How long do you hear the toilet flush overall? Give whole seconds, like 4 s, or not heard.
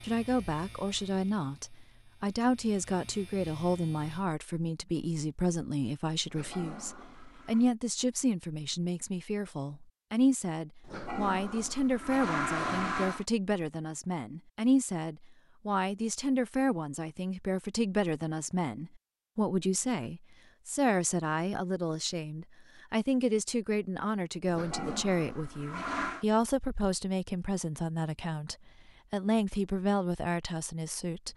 6 s.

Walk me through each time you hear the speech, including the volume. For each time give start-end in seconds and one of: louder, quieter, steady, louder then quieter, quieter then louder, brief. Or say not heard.
0.0-31.3 steady.